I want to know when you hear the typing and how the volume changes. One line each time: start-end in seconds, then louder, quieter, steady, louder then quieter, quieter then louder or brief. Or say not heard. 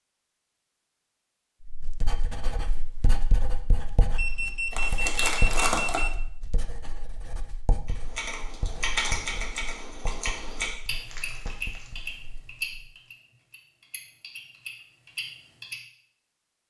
7.8-15.8 quieter.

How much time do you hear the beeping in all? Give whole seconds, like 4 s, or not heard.
2 s.